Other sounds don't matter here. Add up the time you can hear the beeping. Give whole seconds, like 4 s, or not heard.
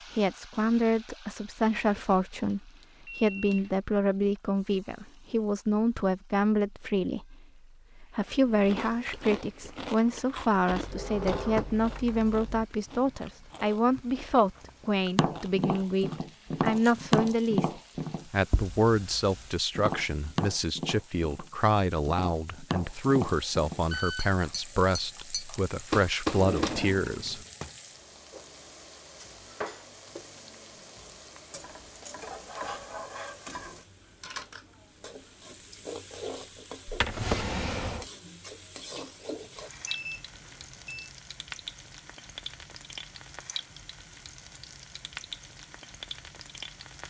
4 s.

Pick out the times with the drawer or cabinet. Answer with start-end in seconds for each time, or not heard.
10.7-12.7, 26.2-27.7, 36.9-38.0.